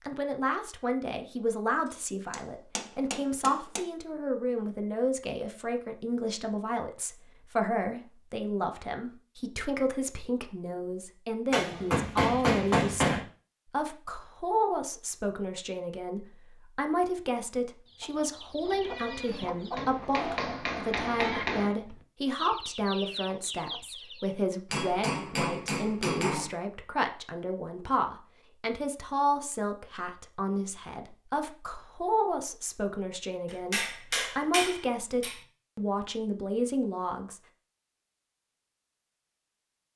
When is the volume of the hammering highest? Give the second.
13 s.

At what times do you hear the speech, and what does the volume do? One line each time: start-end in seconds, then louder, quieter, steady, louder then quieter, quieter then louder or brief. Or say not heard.
0.1-37.4 steady.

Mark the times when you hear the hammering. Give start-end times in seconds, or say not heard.
2.3-3.8, 11.5-13.2, 19.8-21.7, 24.7-26.5, 33.5-35.4.